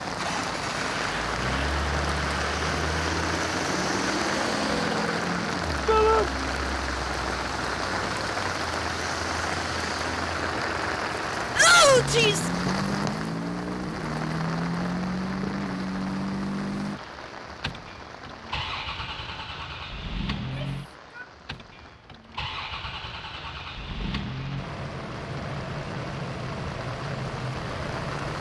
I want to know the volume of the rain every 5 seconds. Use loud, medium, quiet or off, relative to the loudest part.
loud, loud, loud, medium, quiet, medium.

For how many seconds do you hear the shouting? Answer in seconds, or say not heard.
2 s.